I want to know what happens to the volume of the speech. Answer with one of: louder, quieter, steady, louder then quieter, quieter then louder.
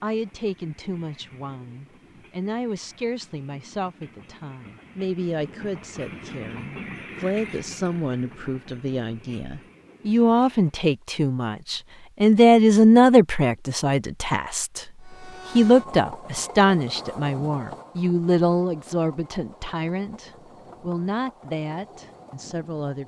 louder then quieter.